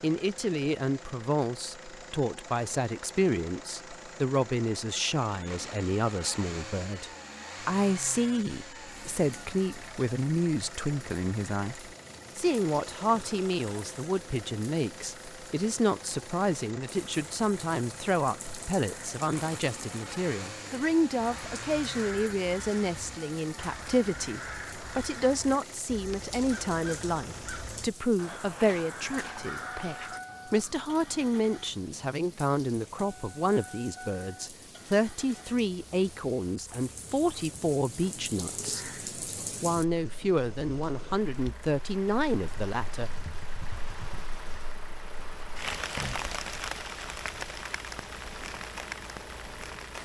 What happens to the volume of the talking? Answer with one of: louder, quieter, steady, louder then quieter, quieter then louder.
steady.